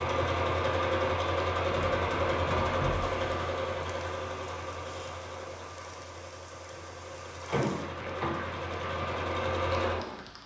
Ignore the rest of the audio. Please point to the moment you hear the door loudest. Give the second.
8 s.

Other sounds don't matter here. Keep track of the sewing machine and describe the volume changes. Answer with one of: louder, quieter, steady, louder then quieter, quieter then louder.
quieter then louder.